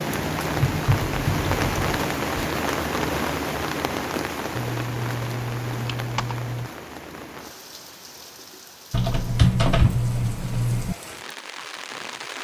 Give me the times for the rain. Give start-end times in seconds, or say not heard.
0.0-12.4.